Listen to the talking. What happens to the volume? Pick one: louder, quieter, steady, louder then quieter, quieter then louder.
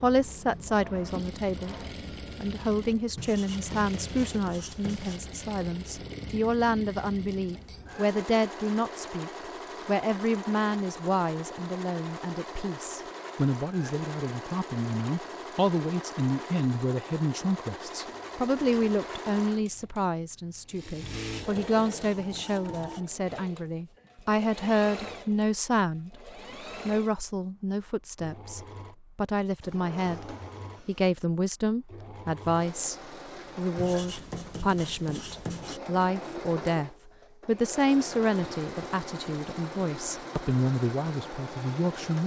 steady.